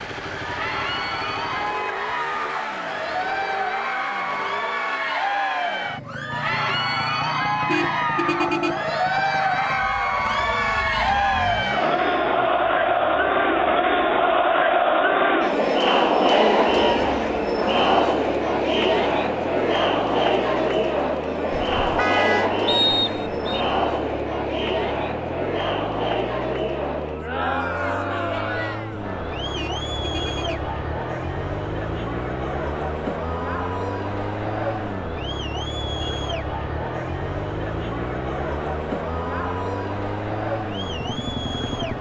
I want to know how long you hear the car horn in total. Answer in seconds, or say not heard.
3 s.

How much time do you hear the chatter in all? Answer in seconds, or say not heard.
42 s.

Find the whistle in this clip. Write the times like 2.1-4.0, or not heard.
22.6-23.6.